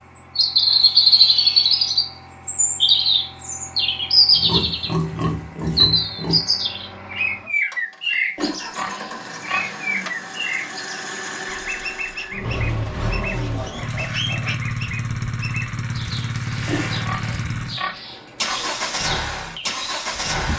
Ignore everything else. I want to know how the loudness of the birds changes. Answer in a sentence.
The loudness of the birds goes down.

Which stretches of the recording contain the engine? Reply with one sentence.
The engine can be heard from 0.0 to 20.5 s.